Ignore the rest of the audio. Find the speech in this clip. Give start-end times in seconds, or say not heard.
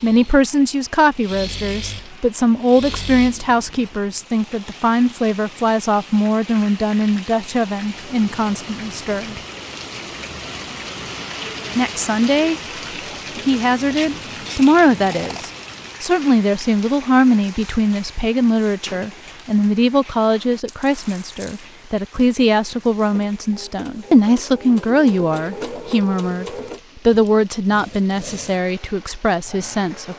0.0-9.3, 11.8-12.6, 13.3-26.4, 27.1-30.1.